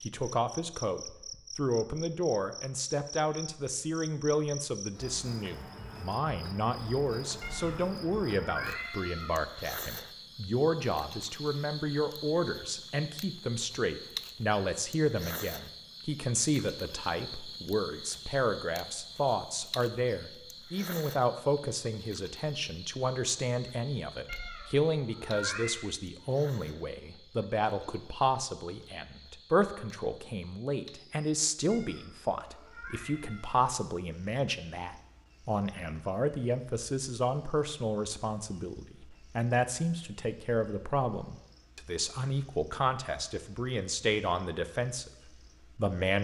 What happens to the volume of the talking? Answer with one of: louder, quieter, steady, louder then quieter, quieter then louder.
steady.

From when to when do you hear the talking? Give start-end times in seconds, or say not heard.
0.0-46.1.